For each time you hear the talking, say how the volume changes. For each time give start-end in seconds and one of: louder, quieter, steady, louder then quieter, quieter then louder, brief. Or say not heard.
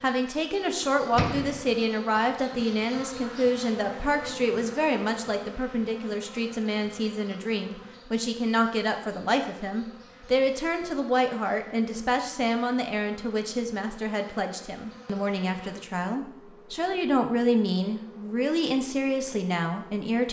0.0-20.2 steady.